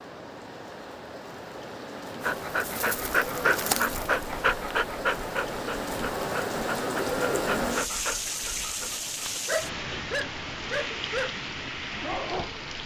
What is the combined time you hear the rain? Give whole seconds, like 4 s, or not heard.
13 s.